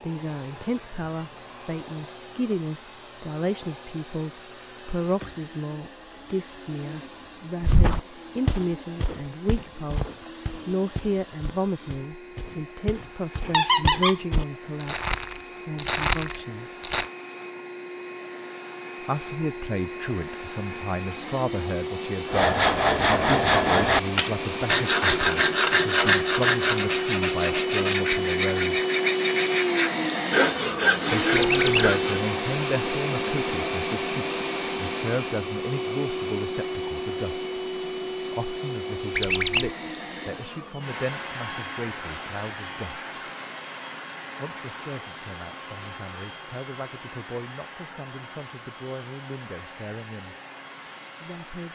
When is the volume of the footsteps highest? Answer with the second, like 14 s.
16 s.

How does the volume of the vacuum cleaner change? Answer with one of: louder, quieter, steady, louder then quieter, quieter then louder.
louder then quieter.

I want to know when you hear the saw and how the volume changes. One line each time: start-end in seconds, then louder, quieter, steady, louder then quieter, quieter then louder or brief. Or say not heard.
22.2-32.2 steady.